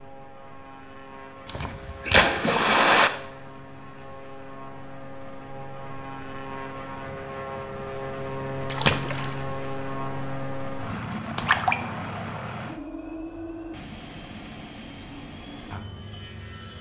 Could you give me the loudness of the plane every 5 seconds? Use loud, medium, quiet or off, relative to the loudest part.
medium, loud, loud, medium.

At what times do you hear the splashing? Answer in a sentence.
The splashing can be heard from 1.4 to 3.1 s, from 8.7 to 9.3 s and from 11.3 to 11.8 s.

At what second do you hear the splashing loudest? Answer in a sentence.
The loudest moment of the splashing is at 3 seconds.